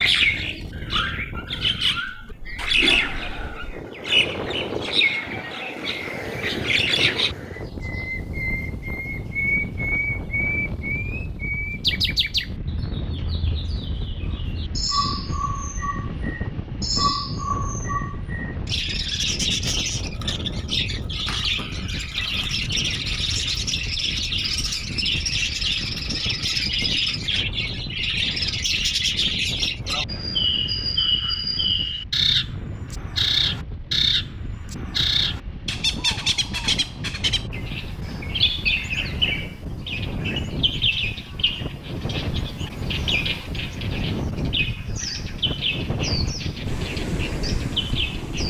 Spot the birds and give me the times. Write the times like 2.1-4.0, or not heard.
0.0-48.4.